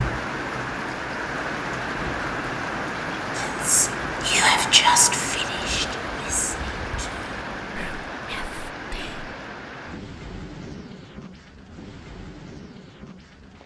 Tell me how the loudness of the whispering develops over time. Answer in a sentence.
The volume of the whispering goes down.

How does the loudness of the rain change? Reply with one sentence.
The loudness of the rain goes down.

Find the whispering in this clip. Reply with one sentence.
You can hear the whispering from 3.3 to 9.3 s.